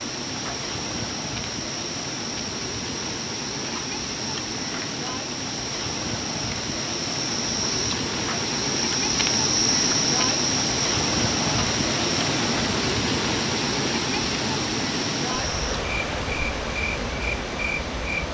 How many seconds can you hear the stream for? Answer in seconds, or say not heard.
18 s.